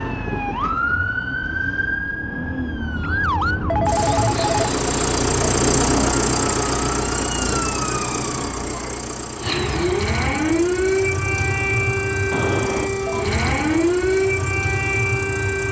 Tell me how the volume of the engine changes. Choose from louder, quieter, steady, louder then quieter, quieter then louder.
louder then quieter.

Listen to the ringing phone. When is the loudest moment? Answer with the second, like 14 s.
4 s.